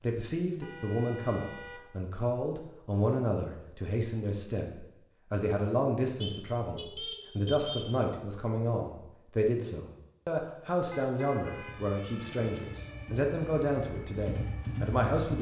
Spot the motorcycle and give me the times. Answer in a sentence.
You can hear the motorcycle from 11.5 to 15.3 s.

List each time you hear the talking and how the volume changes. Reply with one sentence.
The talking can be heard from 0.0 to 15.3 s, at a steady volume.